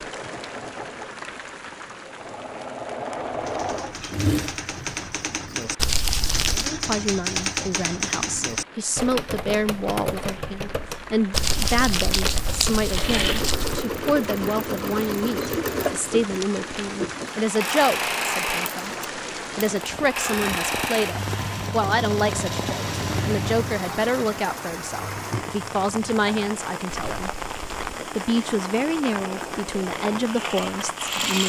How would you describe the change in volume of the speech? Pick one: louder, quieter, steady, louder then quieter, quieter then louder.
steady.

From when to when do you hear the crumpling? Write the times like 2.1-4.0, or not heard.
5.8-6.7, 11.3-13.8, 26.9-28.0.